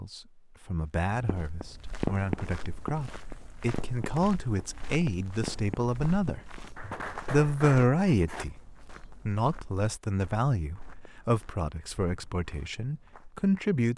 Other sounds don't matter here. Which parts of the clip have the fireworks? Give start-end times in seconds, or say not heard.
1.1-8.4.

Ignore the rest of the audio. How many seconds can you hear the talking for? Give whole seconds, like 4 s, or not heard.
12 s.